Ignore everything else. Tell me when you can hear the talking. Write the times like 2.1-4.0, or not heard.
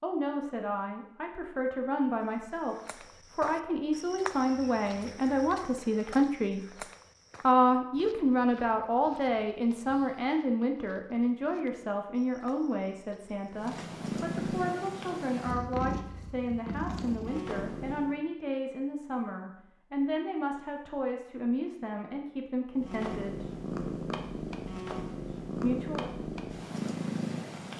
0.0-6.8, 7.4-23.4, 25.6-26.1.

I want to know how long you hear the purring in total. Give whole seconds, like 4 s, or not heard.
10 s.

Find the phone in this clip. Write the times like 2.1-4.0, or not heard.
not heard.